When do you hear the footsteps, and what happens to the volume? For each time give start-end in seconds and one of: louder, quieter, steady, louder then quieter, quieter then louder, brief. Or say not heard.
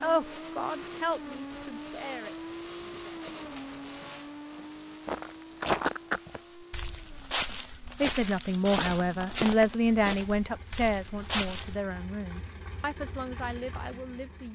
3.0-11.8 louder then quieter.